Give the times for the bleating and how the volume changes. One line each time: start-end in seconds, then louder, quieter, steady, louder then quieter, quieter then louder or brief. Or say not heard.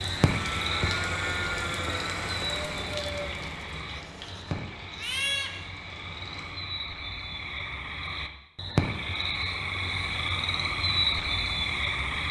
0.0-5.5 quieter then louder.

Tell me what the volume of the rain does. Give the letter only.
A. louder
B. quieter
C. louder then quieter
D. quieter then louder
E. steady
B.